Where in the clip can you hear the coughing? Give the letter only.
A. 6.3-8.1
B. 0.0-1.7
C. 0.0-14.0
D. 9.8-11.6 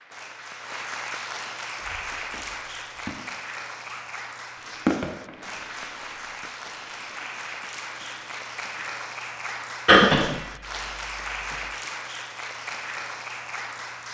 D.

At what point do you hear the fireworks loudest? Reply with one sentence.
The volume of the fireworks peaks at 5 seconds.